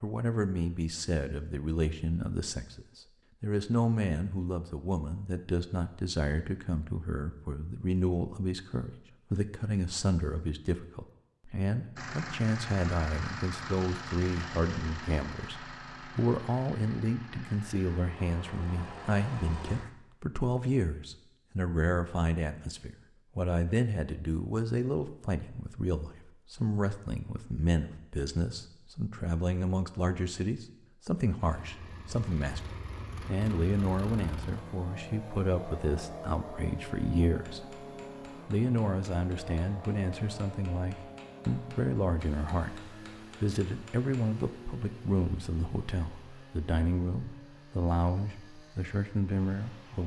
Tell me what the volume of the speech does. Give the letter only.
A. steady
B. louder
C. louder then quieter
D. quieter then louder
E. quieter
A.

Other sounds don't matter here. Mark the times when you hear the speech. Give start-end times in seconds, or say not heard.
0.0-32.6, 33.2-37.8, 38.5-50.0.